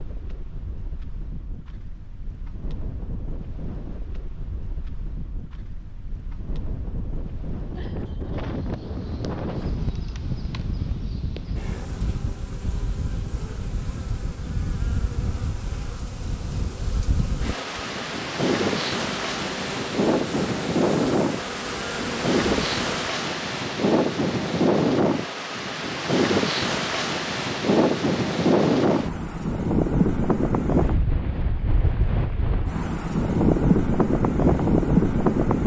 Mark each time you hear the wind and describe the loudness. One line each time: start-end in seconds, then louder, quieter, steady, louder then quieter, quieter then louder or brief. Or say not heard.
0.0-35.6 louder.